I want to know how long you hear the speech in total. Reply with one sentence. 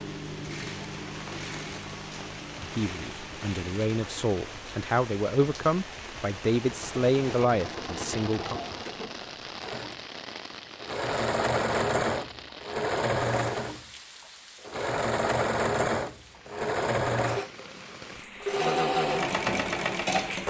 The speech can be heard for 6 seconds in total.